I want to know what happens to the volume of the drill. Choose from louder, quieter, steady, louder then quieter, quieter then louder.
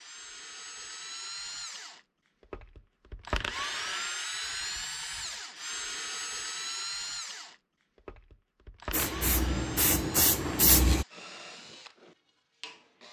louder then quieter.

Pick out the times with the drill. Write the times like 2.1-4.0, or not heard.
0.0-13.0.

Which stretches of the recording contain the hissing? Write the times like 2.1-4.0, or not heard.
8.9-11.1.